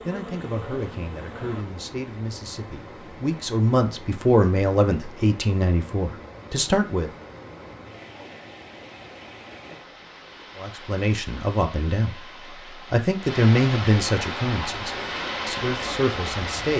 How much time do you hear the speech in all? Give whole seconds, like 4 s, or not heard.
13 s.